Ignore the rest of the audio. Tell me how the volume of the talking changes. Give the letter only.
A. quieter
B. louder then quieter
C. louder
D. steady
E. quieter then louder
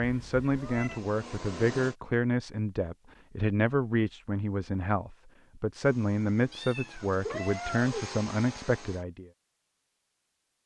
D.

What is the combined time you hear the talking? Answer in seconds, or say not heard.
9 s.